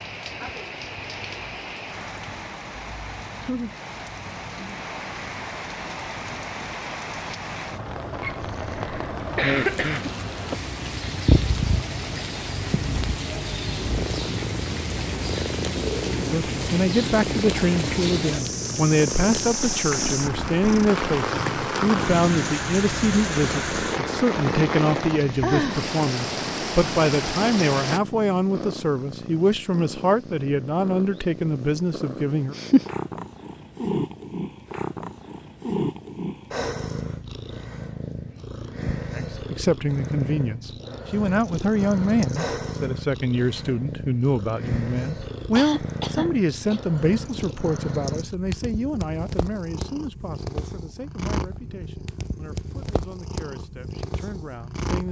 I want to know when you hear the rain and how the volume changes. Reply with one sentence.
You can hear the rain from 0.0 to 28.0 s, getting louder.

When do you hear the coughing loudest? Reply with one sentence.
The volume of the coughing peaks at 10 seconds.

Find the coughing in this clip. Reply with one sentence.
The coughing can be heard from 8.2 to 10.1 s and from 45.5 to 46.8 s.